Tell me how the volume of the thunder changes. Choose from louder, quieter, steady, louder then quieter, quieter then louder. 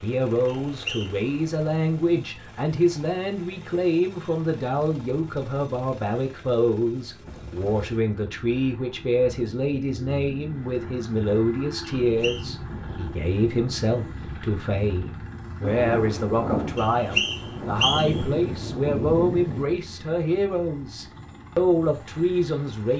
quieter then louder.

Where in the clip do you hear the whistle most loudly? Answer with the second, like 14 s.
17 s.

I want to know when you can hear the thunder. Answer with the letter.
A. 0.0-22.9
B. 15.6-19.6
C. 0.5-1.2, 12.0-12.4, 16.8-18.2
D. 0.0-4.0
B.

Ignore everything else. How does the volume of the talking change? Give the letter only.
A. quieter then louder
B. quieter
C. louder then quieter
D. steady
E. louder
D.